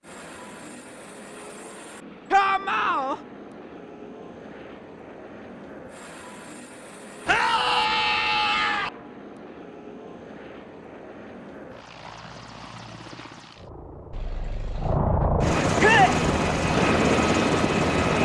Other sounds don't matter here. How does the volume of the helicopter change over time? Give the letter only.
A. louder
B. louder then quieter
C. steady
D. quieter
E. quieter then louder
A.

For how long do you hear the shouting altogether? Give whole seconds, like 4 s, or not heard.
3 s.